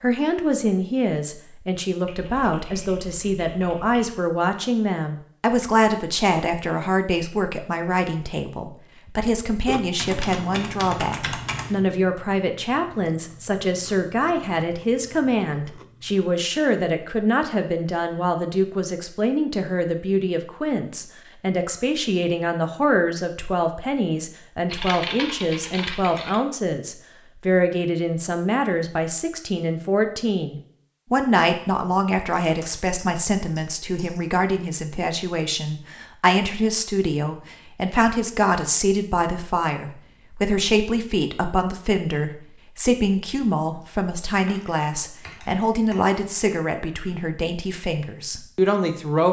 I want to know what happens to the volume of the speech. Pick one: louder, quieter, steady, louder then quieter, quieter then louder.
steady.